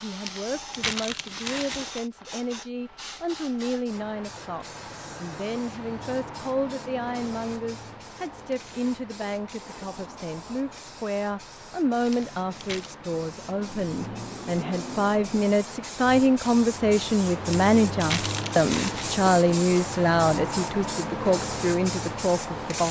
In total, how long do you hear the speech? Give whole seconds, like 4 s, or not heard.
23 s.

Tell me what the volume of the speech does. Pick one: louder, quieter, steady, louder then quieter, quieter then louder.
louder.